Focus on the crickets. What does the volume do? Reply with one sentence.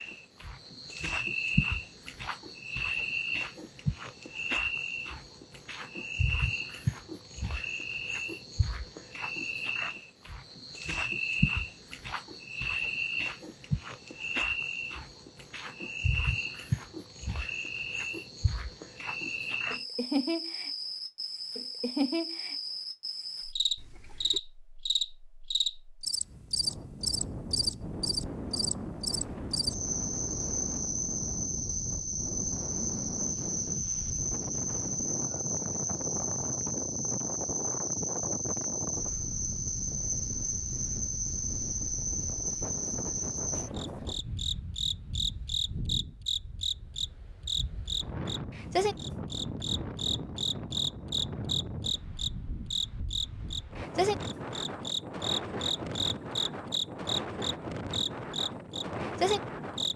The loudness of the crickets stays about the same.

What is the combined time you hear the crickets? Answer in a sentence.
The crickets can be heard for 60 seconds in total.